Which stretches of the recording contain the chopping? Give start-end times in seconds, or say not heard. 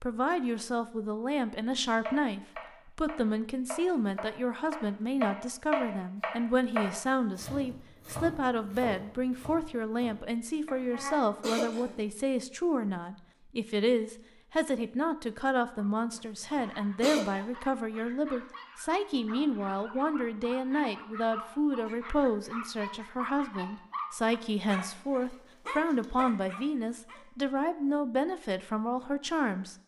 2.0-11.2.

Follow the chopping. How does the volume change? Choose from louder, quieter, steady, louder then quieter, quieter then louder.
louder then quieter.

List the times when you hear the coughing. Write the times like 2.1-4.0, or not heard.
11.4-12.0, 16.1-17.2.